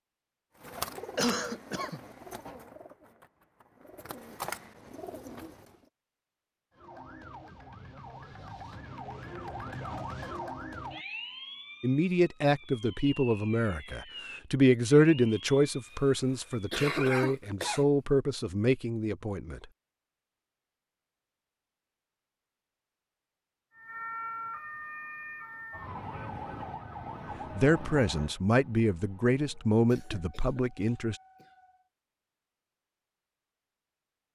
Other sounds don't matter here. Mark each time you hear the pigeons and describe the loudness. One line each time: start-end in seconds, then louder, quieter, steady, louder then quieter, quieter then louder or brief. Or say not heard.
0.6-5.8 quieter then louder.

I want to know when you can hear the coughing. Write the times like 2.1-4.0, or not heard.
1.1-2.0, 16.7-17.9, 29.9-31.5.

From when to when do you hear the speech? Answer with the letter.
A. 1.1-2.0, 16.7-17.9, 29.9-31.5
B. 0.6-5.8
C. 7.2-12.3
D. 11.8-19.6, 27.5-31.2
D.